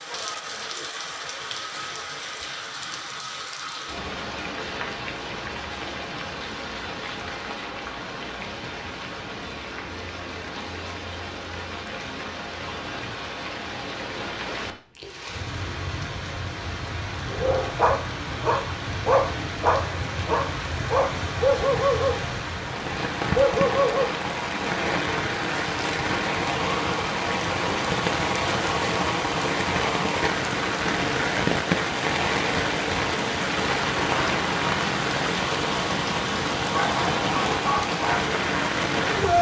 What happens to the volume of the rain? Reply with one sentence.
The loudness of the rain goes up.